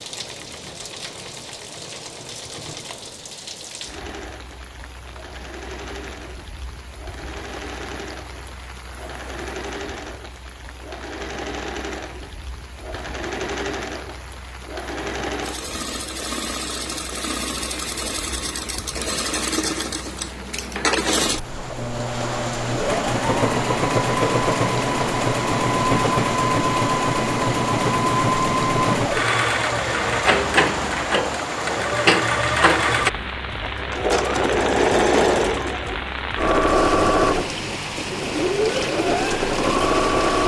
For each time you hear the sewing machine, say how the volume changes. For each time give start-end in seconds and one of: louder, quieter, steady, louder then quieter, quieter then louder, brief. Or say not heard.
0.0-40.4 louder.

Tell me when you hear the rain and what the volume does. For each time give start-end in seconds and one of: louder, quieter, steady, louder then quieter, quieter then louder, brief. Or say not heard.
0.0-40.4 louder.